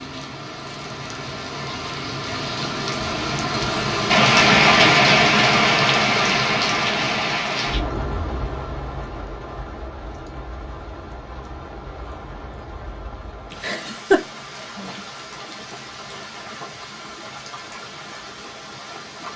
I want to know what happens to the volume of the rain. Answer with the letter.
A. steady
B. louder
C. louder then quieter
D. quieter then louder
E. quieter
C.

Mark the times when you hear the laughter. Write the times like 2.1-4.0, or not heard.
13.5-14.2.